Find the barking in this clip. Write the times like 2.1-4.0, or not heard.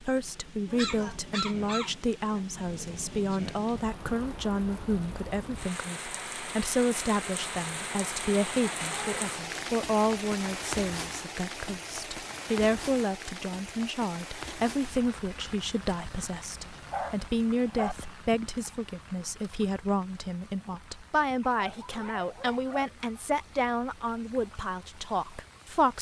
0.7-2.5, 8.8-9.2, 16.8-17.9, 21.5-23.1.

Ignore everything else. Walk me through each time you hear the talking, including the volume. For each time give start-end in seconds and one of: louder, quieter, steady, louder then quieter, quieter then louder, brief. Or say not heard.
0.0-25.9 steady.